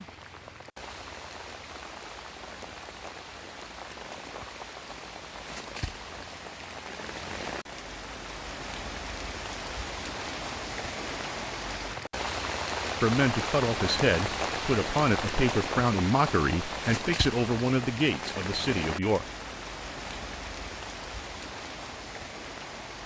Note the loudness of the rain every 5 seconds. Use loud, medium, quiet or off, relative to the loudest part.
medium, medium, loud, loud, medium.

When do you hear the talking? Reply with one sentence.
The talking can be heard from 13.0 to 19.2 s.